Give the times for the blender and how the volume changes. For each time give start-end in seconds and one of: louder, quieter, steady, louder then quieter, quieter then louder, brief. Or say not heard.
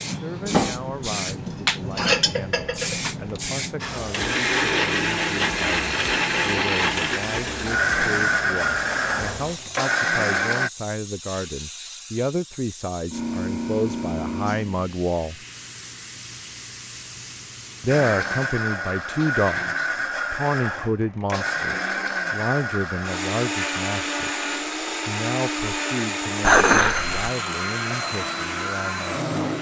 3.8-10.7 steady
17.9-29.5 steady.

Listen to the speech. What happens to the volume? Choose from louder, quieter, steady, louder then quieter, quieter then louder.
louder then quieter.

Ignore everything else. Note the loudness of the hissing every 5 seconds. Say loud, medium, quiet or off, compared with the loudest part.
loud, loud, loud, medium, off, off.